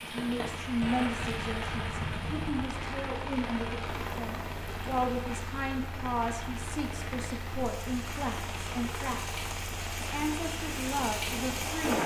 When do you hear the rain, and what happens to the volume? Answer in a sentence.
You can hear the rain from 0.0 to 12.0 s, getting quieter then louder.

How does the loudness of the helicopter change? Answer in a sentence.
The loudness of the helicopter stays about the same.